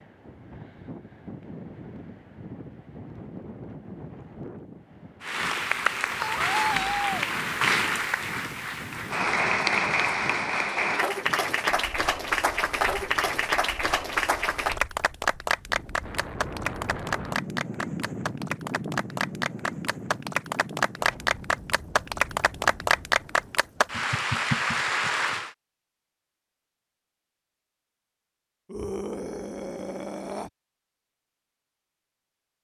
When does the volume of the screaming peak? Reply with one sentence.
The loudest moment of the screaming is at 7 seconds.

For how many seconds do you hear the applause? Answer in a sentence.
The applause can be heard for 20 seconds in total.